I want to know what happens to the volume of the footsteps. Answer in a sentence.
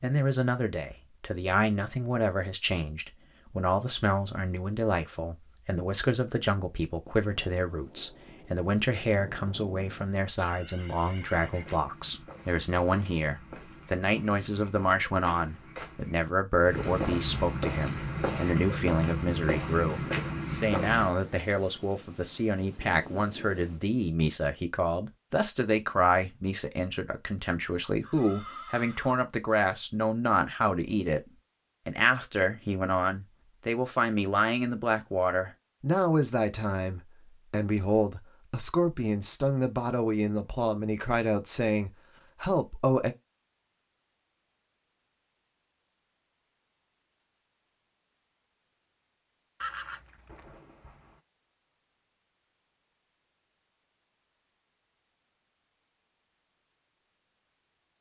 The loudness of the footsteps goes up.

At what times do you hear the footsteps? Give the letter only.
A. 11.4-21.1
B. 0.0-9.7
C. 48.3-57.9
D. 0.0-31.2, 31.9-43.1
A.